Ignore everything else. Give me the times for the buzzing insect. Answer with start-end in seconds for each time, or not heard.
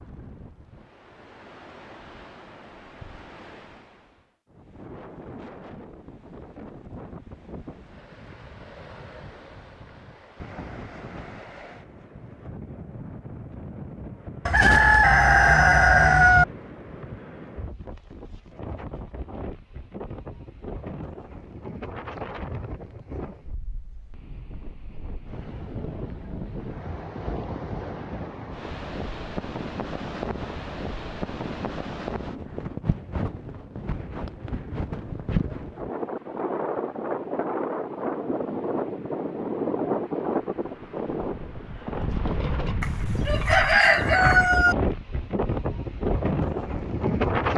not heard.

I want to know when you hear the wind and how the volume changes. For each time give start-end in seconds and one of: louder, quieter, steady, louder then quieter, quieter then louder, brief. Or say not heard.
0.0-47.5 louder.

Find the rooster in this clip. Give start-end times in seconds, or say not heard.
14.4-16.4, 42.8-44.8.